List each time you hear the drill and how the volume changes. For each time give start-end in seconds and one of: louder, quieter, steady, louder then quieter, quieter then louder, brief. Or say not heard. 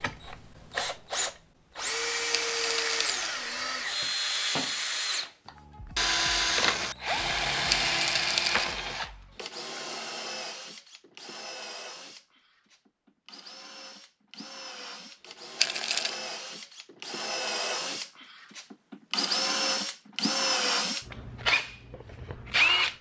0.0-22.9 quieter then louder.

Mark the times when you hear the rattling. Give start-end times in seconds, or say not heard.
2.3-3.4, 7.7-8.8, 15.6-16.1.